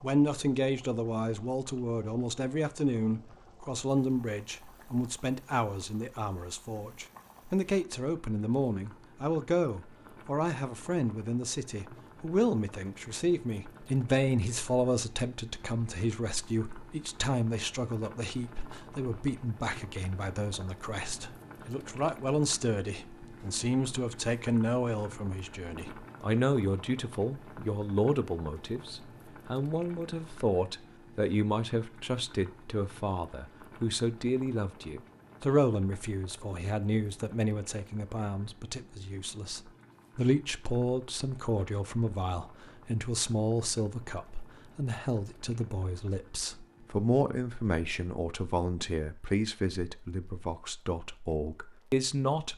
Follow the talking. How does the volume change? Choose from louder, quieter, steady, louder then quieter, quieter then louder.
steady.